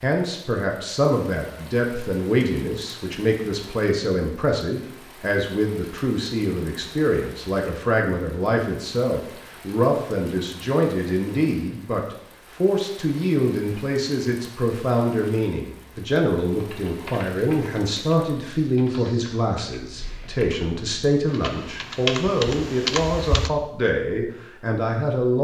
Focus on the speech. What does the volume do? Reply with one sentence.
The volume of the speech stays about the same.